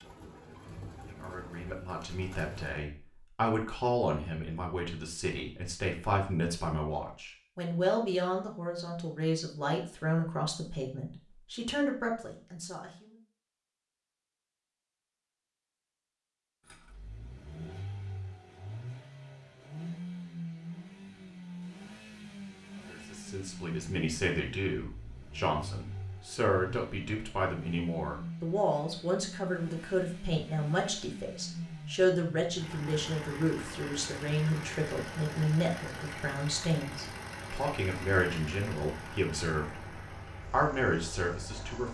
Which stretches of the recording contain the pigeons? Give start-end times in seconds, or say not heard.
0.0-2.8.